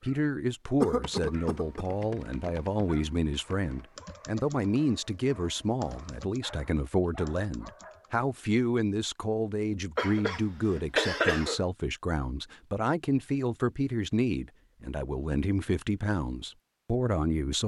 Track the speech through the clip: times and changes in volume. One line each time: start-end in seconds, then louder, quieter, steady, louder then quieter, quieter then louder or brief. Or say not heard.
0.0-17.6 steady.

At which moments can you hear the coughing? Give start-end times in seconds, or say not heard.
0.8-1.9, 9.9-11.6.